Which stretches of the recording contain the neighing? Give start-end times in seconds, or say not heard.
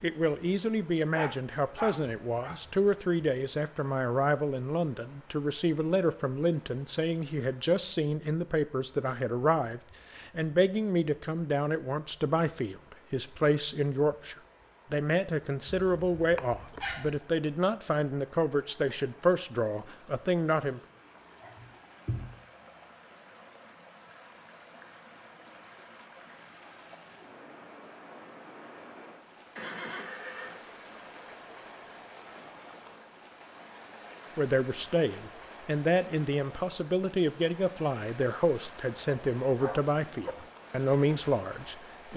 29.6-30.6.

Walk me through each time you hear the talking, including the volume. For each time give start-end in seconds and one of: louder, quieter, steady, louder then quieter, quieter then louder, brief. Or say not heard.
0.0-20.8 steady
34.4-42.1 steady.